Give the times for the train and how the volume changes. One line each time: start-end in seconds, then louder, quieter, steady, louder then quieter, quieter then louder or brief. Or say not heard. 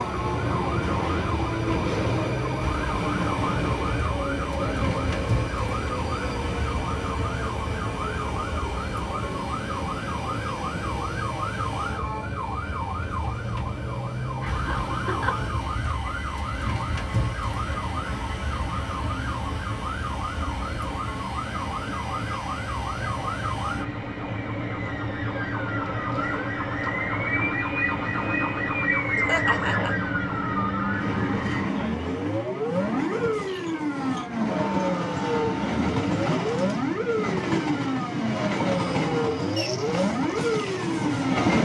0.0-41.5 quieter then louder.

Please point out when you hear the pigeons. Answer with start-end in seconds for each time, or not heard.
not heard.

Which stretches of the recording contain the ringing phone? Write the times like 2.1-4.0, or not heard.
not heard.